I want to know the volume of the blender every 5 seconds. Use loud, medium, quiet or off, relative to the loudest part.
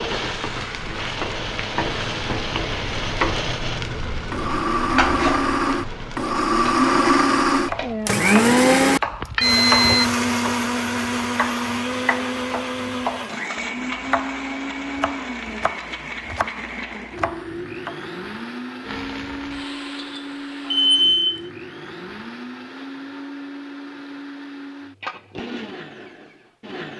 medium, loud, medium, quiet, quiet, quiet.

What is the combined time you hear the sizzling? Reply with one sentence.
The sizzling can be heard for 12 seconds in total.